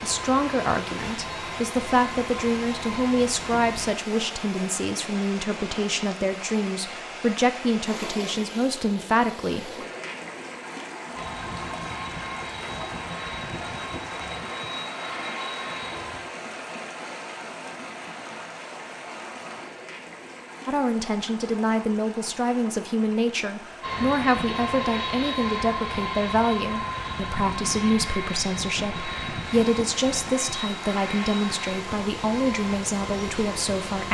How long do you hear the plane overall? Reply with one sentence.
The plane can be heard for 19 seconds in total.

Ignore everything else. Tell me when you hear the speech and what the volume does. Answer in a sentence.
The speech can be heard from 0.0 to 9.8 s, at a steady volume; and from 20.6 to 34.0 s, at a steady volume.